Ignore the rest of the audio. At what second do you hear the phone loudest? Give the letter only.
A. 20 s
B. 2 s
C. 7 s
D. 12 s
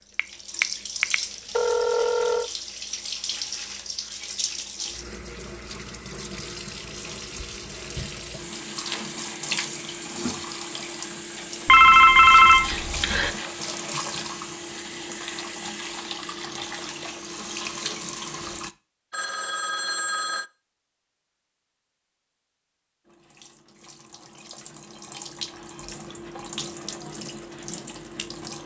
D.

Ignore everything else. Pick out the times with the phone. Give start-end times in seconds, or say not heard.
0.1-2.5, 11.7-13.3, 19.1-20.4.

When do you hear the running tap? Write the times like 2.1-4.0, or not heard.
0.0-18.8, 23.1-28.6.